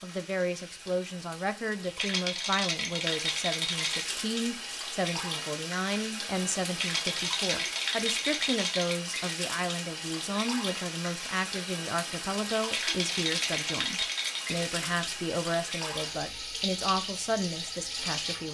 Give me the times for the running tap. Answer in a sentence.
The running tap can be heard from 0.0 to 18.4 s.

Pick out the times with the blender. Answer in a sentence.
The blender can't be heard in this clip.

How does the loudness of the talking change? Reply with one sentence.
The volume of the talking stays about the same.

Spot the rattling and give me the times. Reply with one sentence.
You can hear the rattling from 1.9 to 4.1 s, from 6.8 to 8.9 s and from 12.7 to 14.4 s.